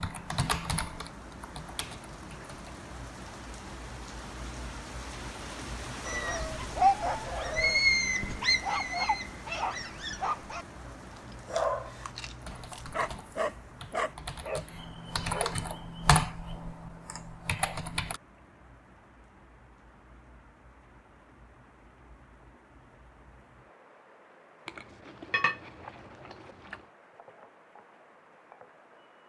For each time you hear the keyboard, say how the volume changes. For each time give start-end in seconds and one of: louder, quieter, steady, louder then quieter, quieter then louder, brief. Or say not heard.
0.0-2.5 brief
12.4-18.2 louder then quieter.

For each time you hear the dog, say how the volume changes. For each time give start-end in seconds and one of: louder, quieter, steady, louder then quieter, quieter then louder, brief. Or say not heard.
6.0-15.6 quieter.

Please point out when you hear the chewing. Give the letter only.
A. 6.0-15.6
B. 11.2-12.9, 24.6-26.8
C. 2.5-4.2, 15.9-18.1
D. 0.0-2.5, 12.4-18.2
B.